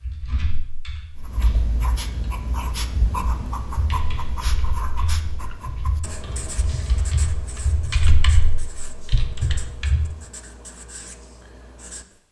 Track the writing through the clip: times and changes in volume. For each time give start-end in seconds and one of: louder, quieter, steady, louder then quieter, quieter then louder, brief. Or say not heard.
1.1-12.2 quieter.